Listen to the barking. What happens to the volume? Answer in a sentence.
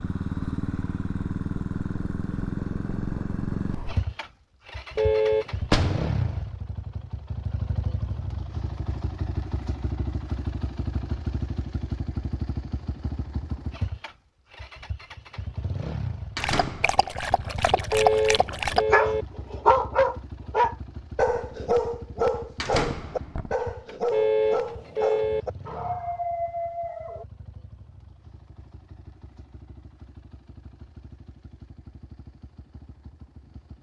The loudness of the barking goes up, then down.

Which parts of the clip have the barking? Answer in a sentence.
You can hear the barking from 16.4 to 27.2 s.